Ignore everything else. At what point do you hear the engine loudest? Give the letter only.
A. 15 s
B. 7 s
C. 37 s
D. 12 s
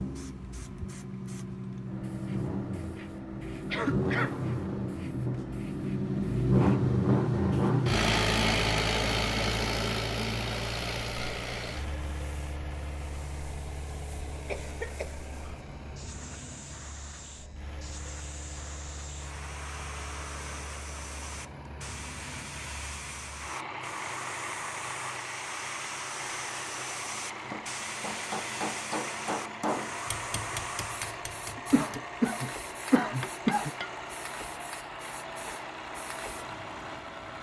B.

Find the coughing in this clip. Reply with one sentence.
The coughing can be heard from 3.7 to 4.4 s, from 14.4 to 15.2 s and from 31.6 to 33.7 s.